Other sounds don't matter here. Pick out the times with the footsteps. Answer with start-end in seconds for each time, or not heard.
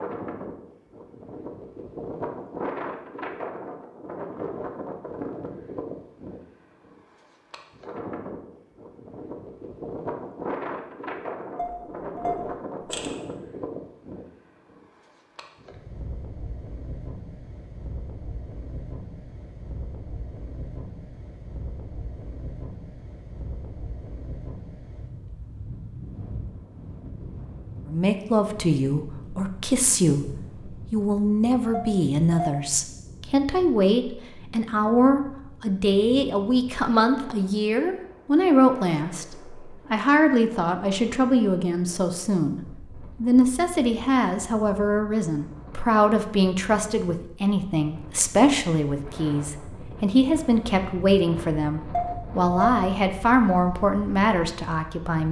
not heard.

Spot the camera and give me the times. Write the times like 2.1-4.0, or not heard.
11.6-13.1, 31.7-32.5, 51.9-52.8.